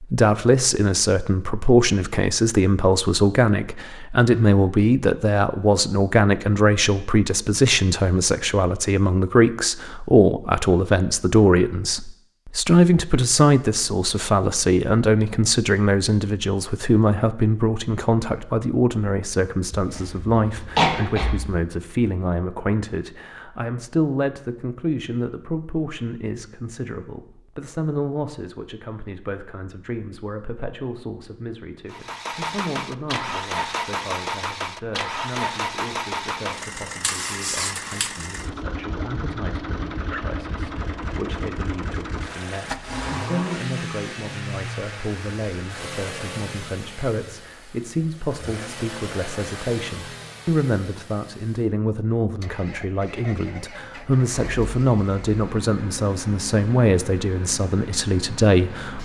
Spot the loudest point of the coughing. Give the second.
21 s.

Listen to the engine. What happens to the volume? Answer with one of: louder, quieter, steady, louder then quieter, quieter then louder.
quieter.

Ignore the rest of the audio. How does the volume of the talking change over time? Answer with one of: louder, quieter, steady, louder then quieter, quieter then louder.
quieter then louder.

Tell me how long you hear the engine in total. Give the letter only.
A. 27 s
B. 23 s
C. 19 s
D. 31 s
A.